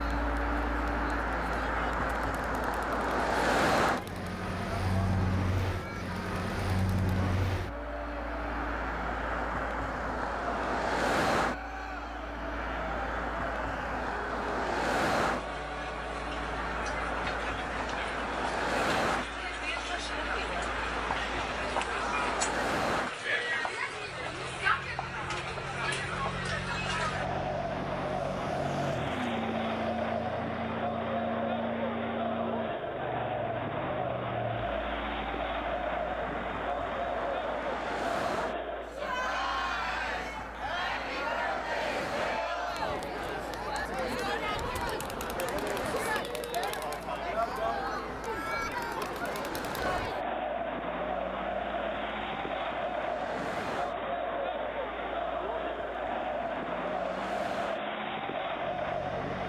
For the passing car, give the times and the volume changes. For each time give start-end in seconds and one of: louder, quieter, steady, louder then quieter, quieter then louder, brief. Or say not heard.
0.0-59.4 quieter.